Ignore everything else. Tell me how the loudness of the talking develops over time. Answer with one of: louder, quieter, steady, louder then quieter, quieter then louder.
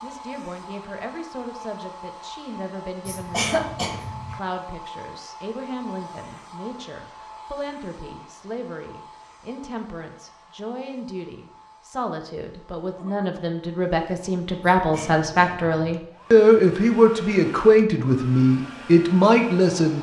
louder.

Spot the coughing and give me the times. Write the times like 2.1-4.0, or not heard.
3.0-4.4, 14.8-16.0.